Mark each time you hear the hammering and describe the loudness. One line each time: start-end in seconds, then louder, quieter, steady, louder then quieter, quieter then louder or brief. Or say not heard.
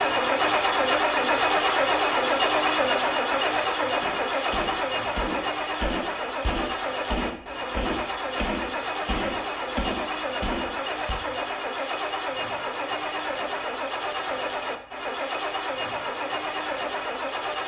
4.0-11.2 steady.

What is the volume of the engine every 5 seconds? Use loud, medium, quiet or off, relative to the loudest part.
loud, medium, medium, medium.